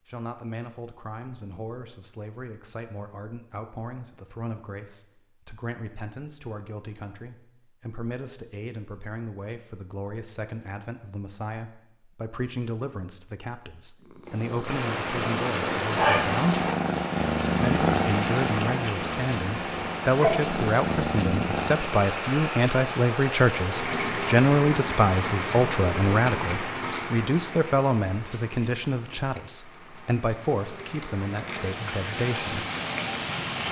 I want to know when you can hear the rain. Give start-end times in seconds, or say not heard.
14.7-33.6.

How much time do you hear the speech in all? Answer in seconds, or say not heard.
32 s.